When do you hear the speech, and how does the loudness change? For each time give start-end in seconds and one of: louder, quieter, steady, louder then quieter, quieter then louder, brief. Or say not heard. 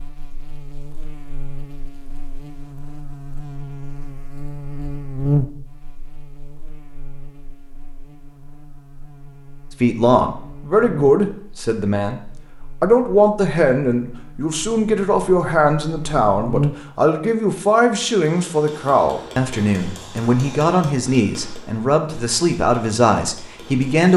9.8-24.1 steady.